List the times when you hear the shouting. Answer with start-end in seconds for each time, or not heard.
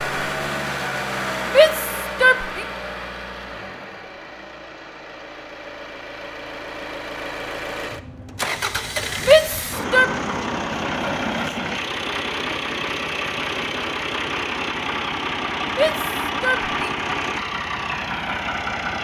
1.4-2.6, 9.2-10.1, 15.8-16.7.